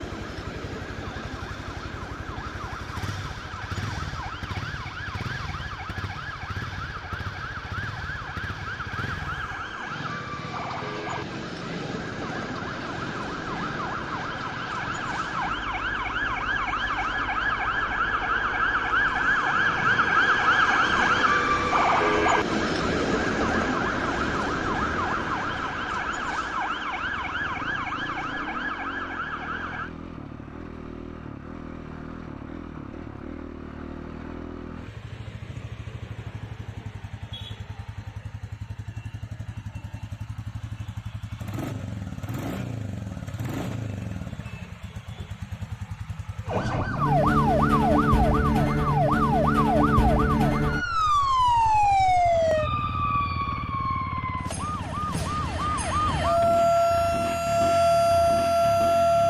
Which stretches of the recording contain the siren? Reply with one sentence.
You can hear the siren from 0.0 to 29.9 s and from 46.5 to 59.2 s.